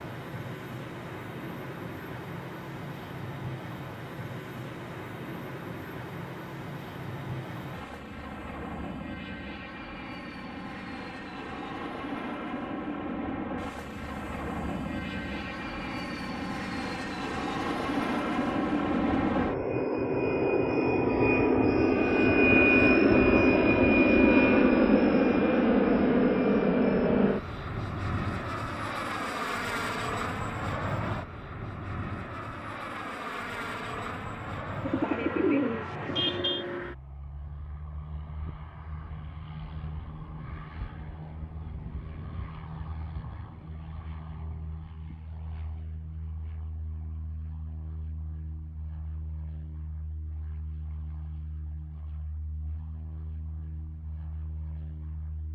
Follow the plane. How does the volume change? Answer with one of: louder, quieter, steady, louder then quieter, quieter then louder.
louder then quieter.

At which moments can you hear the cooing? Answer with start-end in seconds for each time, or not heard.
34.8-36.6.